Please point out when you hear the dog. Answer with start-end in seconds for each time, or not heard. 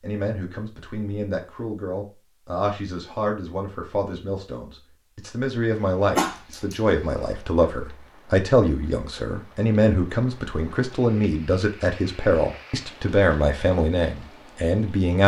6.2-7.7.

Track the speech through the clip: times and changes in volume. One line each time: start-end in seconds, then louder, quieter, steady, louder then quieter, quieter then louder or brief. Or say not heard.
0.0-15.2 louder.